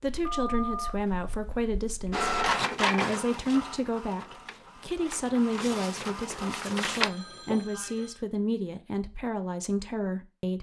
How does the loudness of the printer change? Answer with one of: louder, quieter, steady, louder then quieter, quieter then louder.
quieter then louder.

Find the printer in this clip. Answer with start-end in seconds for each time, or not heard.
2.1-7.1.